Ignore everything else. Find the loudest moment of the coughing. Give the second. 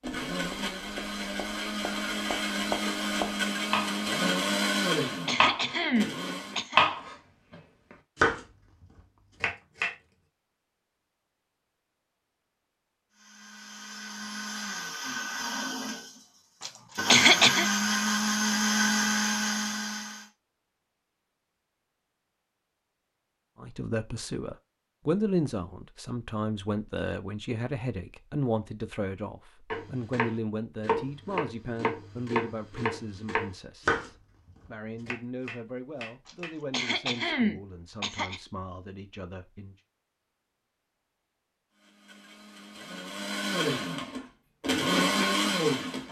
17 s.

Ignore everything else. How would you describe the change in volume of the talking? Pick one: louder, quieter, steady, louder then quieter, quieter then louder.
quieter.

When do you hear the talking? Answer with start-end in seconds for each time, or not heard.
23.6-39.8.